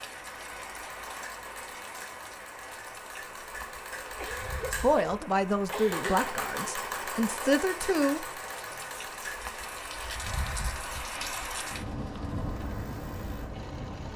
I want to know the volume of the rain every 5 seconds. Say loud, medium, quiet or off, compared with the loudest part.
medium, medium, loud.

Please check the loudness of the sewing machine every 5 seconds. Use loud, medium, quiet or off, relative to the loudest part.
medium, loud, medium.